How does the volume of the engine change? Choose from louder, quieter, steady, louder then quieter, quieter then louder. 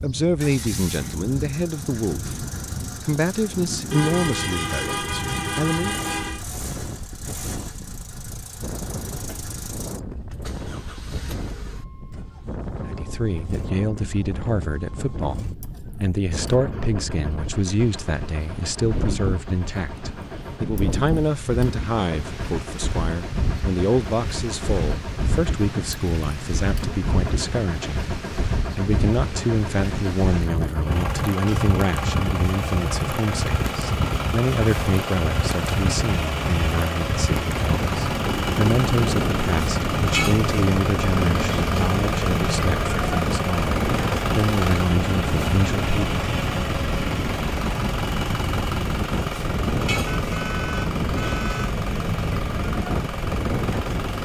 louder.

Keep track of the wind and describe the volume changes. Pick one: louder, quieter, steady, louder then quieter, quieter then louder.
louder.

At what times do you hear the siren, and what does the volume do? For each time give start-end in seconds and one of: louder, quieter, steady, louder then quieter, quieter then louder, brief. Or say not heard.
not heard.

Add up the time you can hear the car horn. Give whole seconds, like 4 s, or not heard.
4 s.